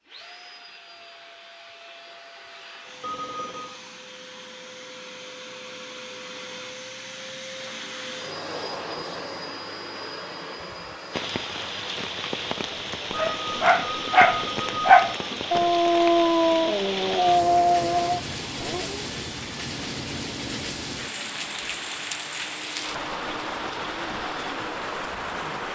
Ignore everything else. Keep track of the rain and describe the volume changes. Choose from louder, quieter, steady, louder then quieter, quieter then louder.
steady.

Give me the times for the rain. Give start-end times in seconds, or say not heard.
11.1-25.7.